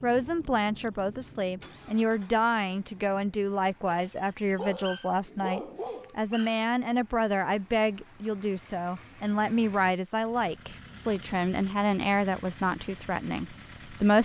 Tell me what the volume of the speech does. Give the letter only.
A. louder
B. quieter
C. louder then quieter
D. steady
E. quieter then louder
D.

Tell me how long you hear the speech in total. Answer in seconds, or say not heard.
14 s.